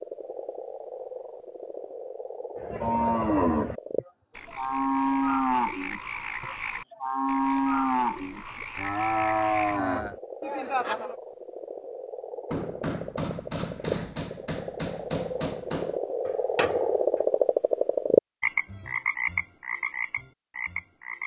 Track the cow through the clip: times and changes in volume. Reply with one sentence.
The cow can be heard from 2.5 to 11.2 s, at a steady volume.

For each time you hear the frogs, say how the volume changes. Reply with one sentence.
The frogs can be heard from 0.0 to 21.2 s, getting louder.